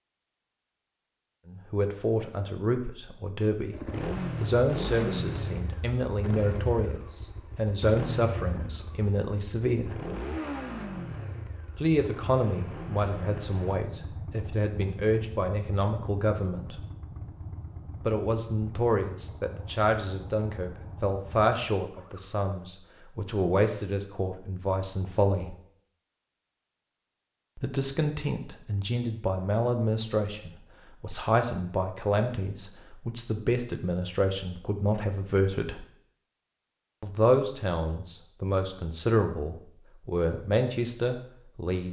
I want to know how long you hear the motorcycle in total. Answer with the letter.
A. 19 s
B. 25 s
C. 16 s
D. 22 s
A.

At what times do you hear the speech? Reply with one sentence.
You can hear the speech from 1.4 to 3.8 s, from 4.4 to 9.9 s, from 11.8 to 16.9 s, from 18.1 to 25.6 s, from 27.6 to 35.9 s and from 37.0 to 41.8 s.